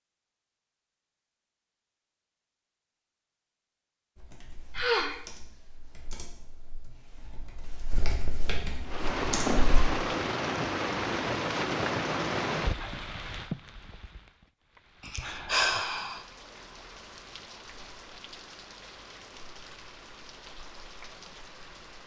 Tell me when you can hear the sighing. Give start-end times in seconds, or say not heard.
4.8-5.2, 15.1-16.2.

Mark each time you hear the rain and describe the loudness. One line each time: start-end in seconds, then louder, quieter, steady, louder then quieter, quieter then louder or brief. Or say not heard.
8.8-22.0 quieter.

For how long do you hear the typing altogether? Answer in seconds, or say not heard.
6 s.